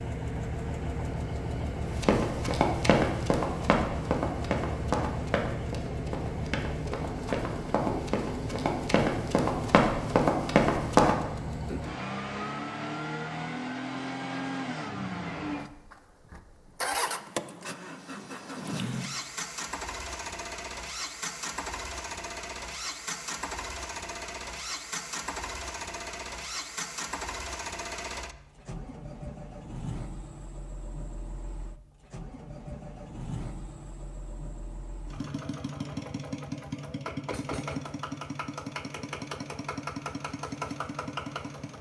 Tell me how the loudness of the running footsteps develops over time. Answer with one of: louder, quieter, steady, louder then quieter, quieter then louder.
quieter then louder.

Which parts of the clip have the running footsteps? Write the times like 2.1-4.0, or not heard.
1.9-11.2.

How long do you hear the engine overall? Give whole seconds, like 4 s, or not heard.
42 s.